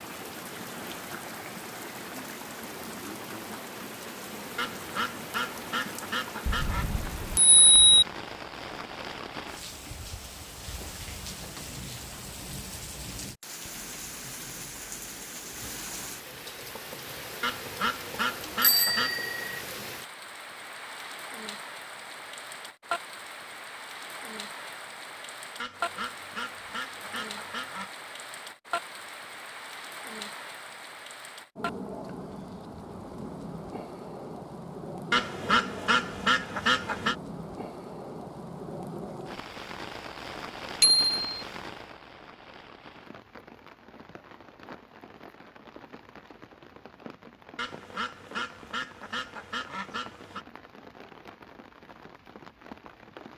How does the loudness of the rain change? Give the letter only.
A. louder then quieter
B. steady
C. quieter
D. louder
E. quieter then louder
C.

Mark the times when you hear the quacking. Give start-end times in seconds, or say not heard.
4.5-6.8, 17.4-19.2, 25.6-27.9, 35.1-37.1, 47.5-50.5.